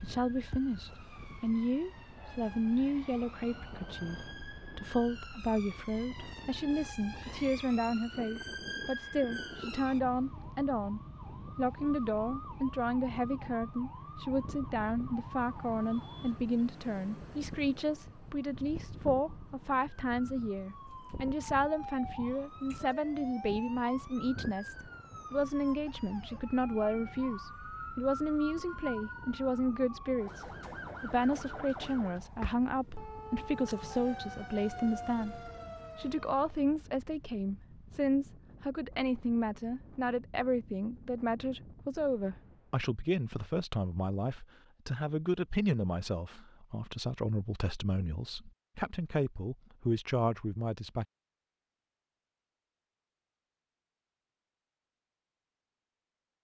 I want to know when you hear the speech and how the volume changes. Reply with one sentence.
The speech can be heard from 0.0 to 51.0 s, at a steady volume.